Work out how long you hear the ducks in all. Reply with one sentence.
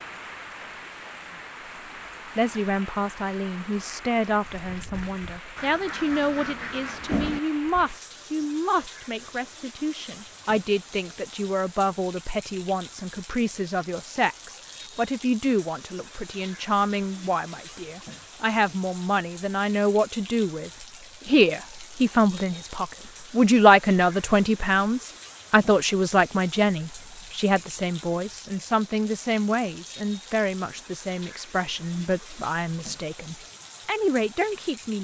You can hear the ducks for 2 seconds altogether.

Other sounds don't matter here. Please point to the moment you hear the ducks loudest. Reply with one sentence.
The volume of the ducks peaks at 7 seconds.